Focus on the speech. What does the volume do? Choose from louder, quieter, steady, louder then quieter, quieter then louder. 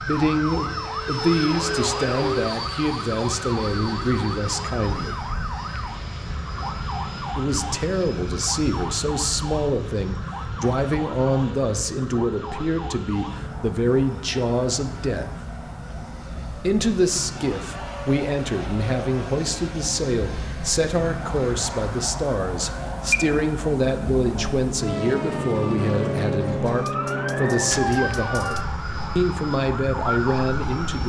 steady.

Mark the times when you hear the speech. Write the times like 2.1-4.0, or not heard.
0.0-5.3, 7.3-15.5, 16.6-31.0.